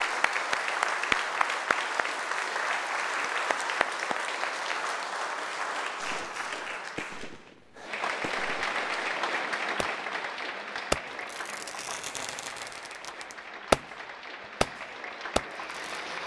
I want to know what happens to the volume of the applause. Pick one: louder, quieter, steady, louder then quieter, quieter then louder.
quieter.